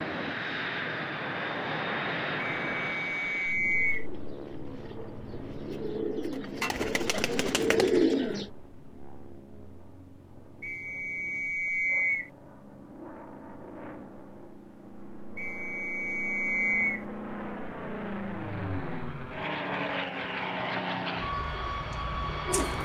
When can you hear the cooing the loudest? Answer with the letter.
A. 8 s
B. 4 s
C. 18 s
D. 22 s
A.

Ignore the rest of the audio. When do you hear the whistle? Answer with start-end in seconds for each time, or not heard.
2.4-4.0, 10.6-12.3, 15.3-17.1.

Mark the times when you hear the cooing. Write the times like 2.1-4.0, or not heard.
3.3-8.5, 21.4-22.8.